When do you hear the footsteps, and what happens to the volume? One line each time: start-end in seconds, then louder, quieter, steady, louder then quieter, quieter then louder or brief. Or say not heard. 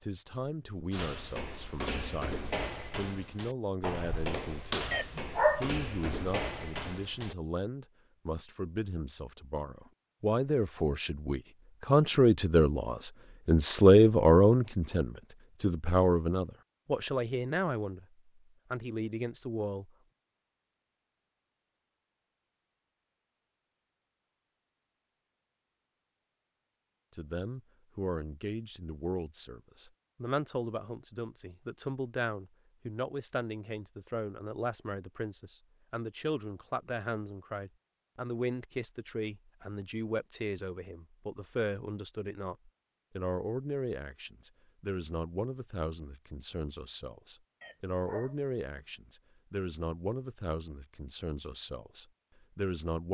0.9-7.3 steady.